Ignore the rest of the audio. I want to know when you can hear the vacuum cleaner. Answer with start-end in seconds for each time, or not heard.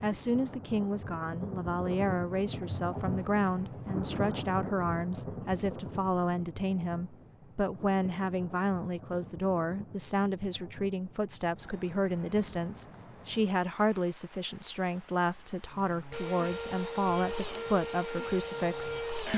16.1-19.3.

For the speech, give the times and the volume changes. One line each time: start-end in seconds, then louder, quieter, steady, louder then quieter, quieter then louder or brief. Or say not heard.
0.0-19.3 steady.